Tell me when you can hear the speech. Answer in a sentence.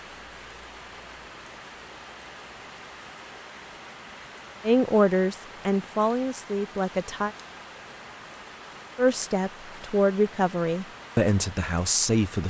You can hear the speech from 4.7 to 7.3 s and from 8.9 to 12.4 s.